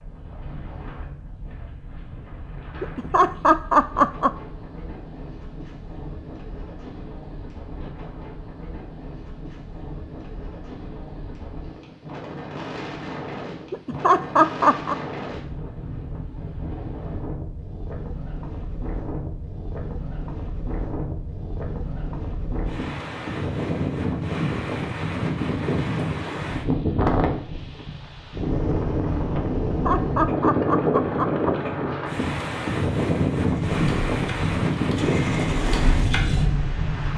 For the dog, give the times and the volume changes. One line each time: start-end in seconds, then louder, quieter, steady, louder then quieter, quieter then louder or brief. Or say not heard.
not heard.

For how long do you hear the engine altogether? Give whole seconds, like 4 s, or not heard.
4 s.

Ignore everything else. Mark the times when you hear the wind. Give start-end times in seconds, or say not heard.
0.0-37.1.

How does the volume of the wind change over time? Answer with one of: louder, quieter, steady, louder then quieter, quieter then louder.
louder.